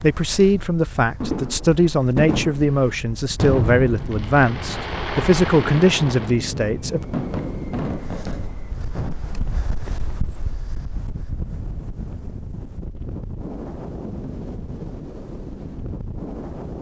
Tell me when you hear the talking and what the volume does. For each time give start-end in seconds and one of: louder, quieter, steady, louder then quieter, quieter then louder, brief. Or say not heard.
0.0-7.0 steady.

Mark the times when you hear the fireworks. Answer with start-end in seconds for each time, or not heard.
1.2-9.2.